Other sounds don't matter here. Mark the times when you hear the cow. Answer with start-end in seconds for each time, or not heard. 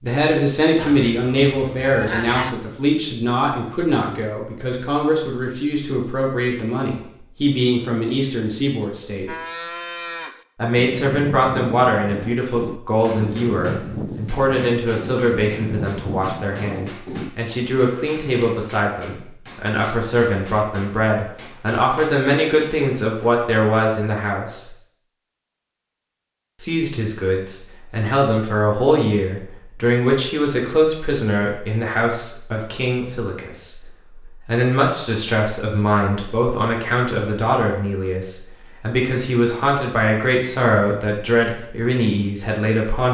9.2-17.3.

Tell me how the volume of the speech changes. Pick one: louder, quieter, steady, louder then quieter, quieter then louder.
steady.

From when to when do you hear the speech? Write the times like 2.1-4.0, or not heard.
0.0-9.3, 10.6-24.6, 26.6-43.0.